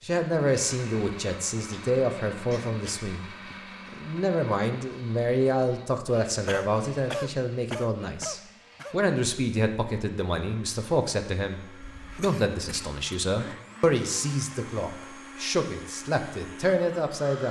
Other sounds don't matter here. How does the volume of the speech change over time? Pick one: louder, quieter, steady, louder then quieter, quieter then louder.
steady.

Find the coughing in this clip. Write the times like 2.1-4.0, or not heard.
1.7-3.6, 6.5-8.9, 11.8-13.0.